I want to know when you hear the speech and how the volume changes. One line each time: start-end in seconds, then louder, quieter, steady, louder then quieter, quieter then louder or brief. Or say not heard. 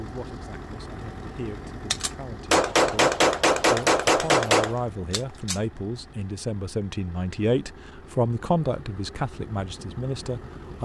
0.0-10.7 louder.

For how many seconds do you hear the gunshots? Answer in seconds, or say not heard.
4 s.